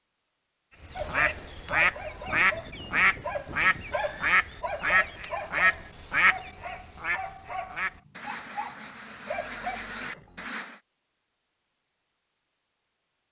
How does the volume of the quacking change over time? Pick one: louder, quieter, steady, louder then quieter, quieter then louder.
quieter.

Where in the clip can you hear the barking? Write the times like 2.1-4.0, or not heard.
0.9-9.8.